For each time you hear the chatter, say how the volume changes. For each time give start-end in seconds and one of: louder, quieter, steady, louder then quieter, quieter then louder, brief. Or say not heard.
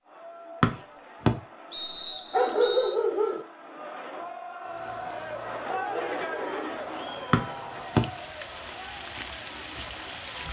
0.0-10.4 louder then quieter.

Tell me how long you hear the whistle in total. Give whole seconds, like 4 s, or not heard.
3 s.